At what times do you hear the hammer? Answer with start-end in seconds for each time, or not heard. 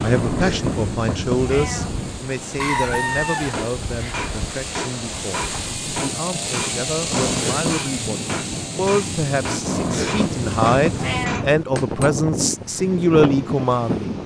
3.5-12.1.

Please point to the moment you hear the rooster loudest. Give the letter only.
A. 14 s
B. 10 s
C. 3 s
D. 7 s
C.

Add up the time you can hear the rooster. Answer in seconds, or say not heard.
2 s.